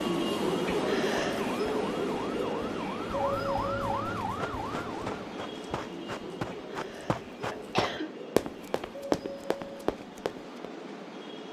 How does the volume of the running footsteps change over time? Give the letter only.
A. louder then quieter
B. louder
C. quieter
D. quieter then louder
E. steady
B.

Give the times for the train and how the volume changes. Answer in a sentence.
The train can be heard from 0.0 to 11.4 s, getting quieter.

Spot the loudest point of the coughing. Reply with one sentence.
The volume of the coughing peaks at 8 seconds.